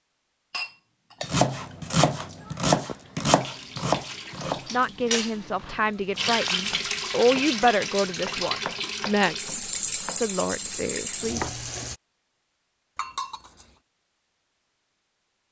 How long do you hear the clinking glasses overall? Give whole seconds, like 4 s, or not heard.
2 s.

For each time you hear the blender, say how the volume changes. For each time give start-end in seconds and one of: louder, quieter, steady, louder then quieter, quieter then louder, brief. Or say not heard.
not heard.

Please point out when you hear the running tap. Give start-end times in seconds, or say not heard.
2.2-12.0.